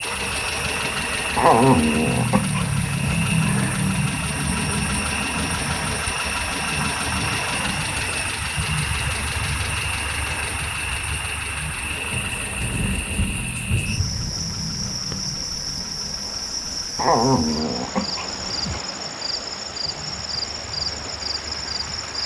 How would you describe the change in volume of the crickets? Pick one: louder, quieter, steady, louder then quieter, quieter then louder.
steady.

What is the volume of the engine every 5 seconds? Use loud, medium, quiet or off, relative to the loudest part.
loud, loud, medium, quiet, quiet.